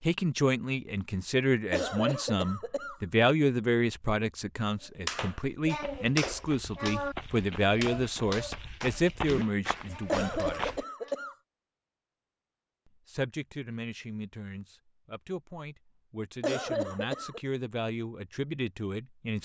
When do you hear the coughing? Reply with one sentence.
You can hear the coughing from 1.7 to 3.0 s, from 10.1 to 11.3 s and from 16.4 to 17.4 s.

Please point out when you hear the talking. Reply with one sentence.
You can hear the talking from 0.0 to 10.7 s and from 13.1 to 19.4 s.